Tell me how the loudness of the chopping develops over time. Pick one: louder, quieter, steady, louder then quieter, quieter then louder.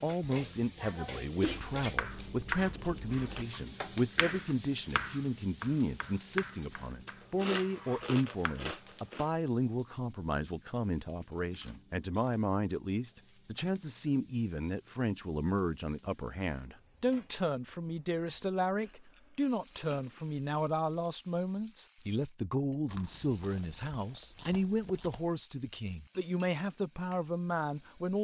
quieter.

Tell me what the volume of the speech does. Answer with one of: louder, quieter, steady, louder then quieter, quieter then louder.
steady.